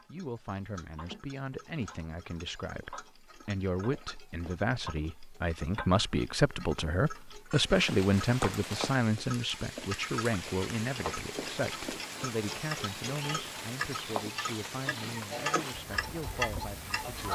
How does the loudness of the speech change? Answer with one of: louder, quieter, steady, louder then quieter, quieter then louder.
louder then quieter.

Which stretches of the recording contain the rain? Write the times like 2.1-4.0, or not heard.
7.5-17.1.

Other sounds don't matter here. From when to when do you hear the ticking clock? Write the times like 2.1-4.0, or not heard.
0.0-17.3.